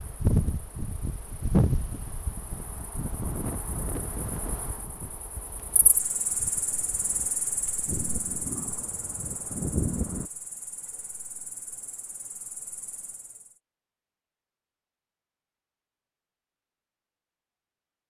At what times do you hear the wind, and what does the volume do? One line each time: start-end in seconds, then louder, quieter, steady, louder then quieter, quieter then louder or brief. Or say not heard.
0.0-10.3 quieter then louder.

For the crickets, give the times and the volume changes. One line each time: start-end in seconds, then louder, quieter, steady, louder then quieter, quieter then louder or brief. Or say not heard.
0.0-13.6 louder then quieter.